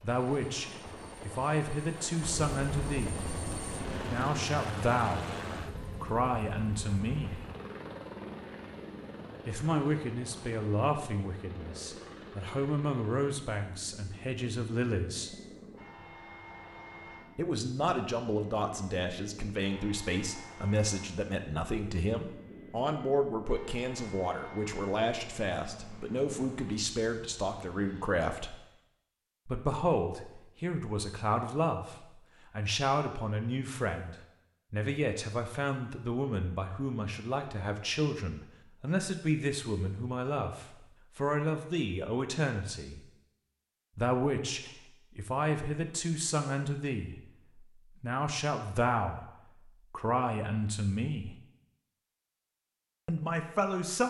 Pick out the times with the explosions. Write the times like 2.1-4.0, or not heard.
2.2-4.1.